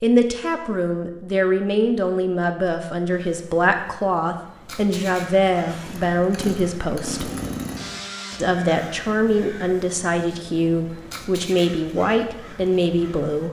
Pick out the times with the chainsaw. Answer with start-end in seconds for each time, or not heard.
5.7-8.4.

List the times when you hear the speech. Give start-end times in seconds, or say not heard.
0.0-7.3, 8.3-13.4.